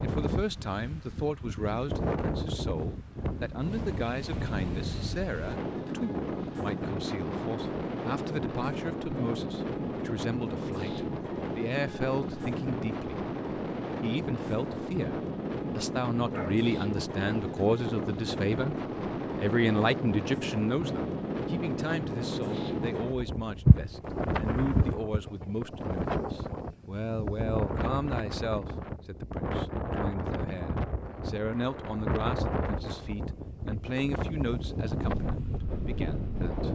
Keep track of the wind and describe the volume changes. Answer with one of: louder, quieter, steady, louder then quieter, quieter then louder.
steady.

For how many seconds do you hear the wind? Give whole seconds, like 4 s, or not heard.
37 s.